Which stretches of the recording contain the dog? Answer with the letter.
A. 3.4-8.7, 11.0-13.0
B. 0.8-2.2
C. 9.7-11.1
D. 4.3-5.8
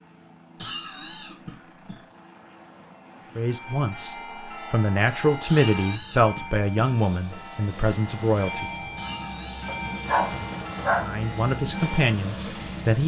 C.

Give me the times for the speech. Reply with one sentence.
The speech can be heard from 3.4 to 8.7 s and from 11.0 to 13.0 s.